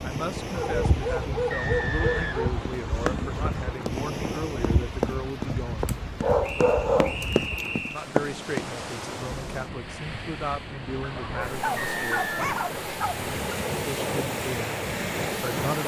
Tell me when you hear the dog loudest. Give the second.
7 s.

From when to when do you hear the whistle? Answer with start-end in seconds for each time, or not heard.
1.5-2.9, 6.4-8.1, 11.8-12.4.